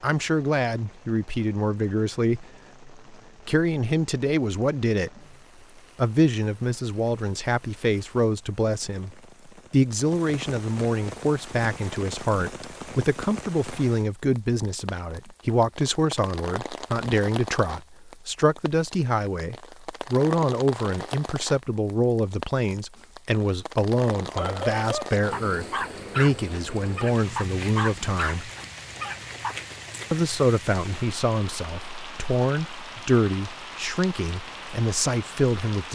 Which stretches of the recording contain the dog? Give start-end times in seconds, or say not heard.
24.4-29.6.